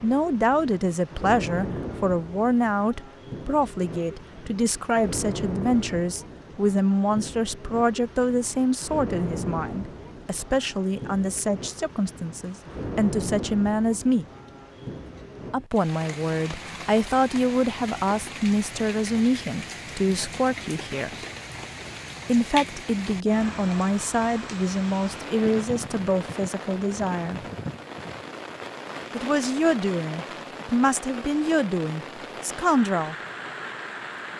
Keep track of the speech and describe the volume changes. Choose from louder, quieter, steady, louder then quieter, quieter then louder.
steady.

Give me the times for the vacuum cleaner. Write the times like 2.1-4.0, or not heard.
not heard.